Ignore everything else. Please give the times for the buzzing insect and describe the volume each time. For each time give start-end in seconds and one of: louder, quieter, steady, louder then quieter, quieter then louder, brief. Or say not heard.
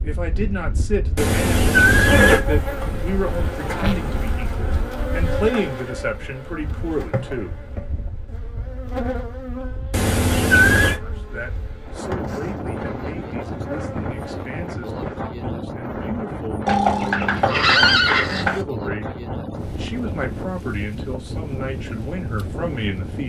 2.0-15.2 quieter.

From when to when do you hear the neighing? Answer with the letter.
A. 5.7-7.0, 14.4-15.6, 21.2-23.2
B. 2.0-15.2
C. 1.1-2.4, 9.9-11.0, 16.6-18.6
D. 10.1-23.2
C.